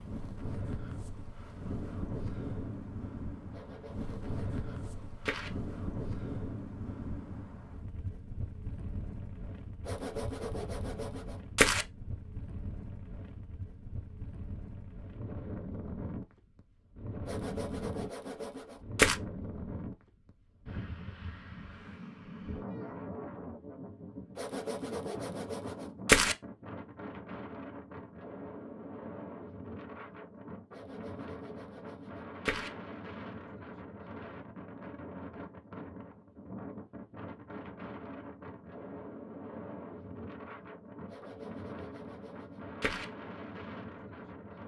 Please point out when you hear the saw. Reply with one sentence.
You can hear the saw from 3.5 to 5.5 s, from 9.8 to 11.8 s, from 17.2 to 19.1 s, from 24.4 to 26.4 s, from 30.7 to 32.7 s and from 41.1 to 43.0 s.